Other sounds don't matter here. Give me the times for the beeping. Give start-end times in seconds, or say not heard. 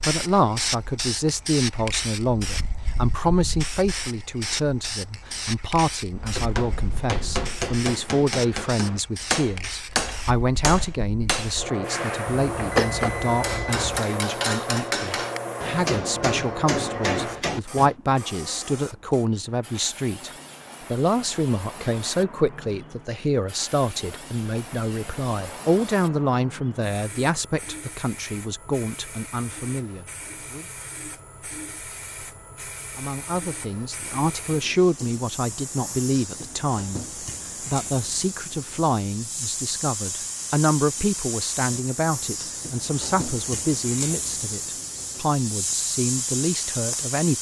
12.5-14.0.